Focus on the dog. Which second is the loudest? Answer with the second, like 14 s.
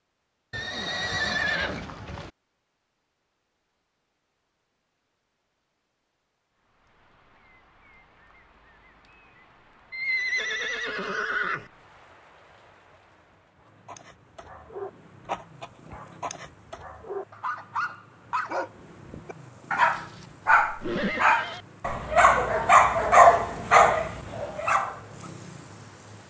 23 s.